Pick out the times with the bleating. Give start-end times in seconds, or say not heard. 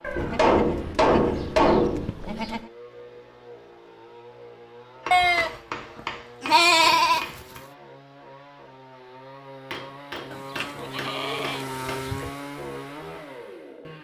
0.0-2.7, 5.1-7.4, 10.3-12.3.